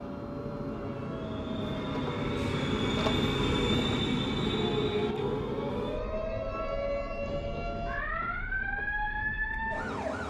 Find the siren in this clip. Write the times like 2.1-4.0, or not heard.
0.0-10.2.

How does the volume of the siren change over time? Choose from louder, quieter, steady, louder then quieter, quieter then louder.
louder.